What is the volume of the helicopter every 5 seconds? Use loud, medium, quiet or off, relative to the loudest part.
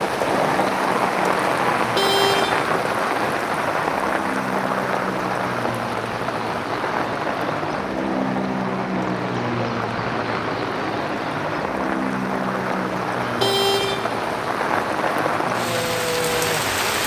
medium, loud, loud, medium.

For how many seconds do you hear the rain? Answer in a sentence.
The rain can be heard for 17 seconds in total.